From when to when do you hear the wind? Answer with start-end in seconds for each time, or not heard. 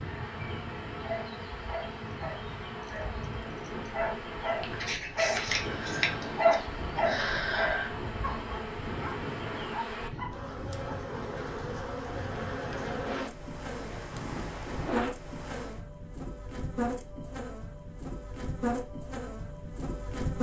0.0-15.8.